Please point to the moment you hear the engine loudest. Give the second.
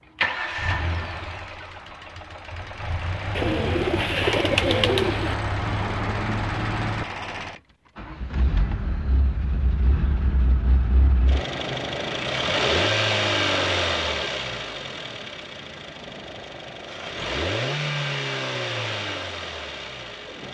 13 s.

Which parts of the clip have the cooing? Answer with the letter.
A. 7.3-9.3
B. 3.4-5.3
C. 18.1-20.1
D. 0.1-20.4
B.